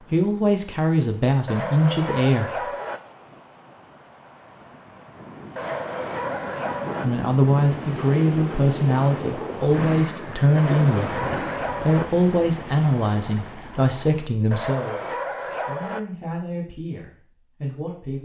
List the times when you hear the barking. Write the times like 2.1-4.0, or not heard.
1.4-3.0, 5.5-7.0, 10.6-12.1, 14.5-16.0.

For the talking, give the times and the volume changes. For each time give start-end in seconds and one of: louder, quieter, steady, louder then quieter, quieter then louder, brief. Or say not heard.
0.1-2.7 brief
7.0-18.2 quieter.